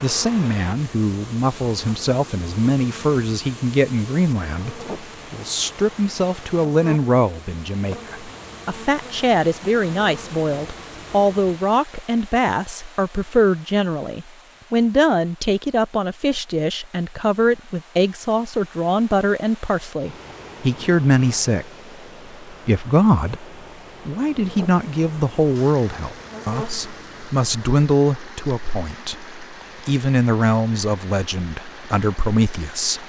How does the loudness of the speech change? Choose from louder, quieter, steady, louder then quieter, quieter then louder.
steady.